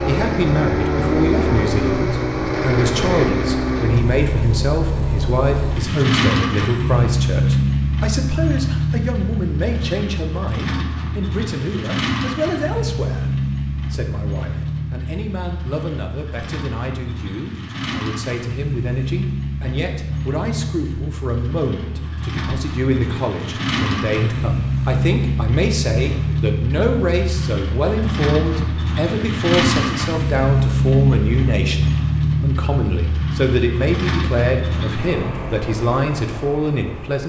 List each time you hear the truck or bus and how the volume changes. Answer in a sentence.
The truck or bus can be heard from 0.0 to 37.2 s, getting quieter then louder.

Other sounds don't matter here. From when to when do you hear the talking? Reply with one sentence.
The talking can be heard from 0.1 to 37.2 s.